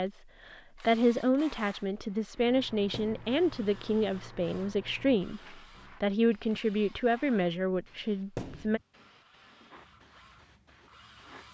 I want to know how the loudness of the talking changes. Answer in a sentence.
The loudness of the talking stays about the same.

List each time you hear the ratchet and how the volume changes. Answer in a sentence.
The ratchet can't be heard in this clip.